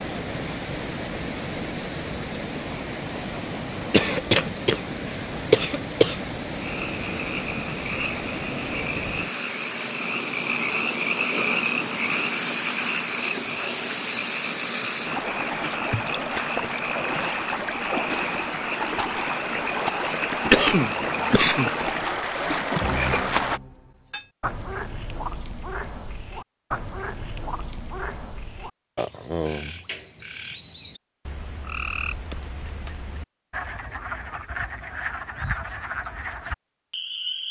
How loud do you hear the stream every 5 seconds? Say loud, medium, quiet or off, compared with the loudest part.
medium, medium, medium, loud, loud, off, off, off.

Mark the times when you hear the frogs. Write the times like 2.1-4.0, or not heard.
6.5-37.4.